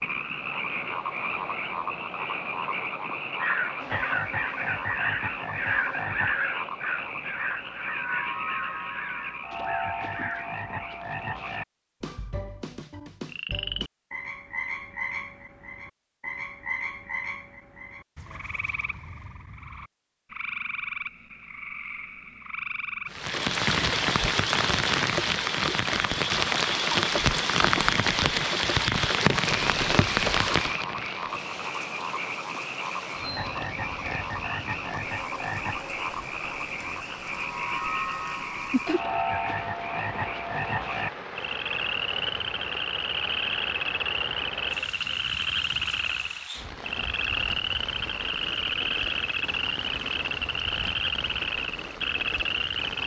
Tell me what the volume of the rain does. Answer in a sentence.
The loudness of the rain goes down.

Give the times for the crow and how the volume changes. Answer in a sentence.
The crow can be heard from 3.4 to 10.7 s, getting quieter.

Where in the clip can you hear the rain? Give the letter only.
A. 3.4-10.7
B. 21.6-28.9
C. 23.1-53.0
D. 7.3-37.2
C.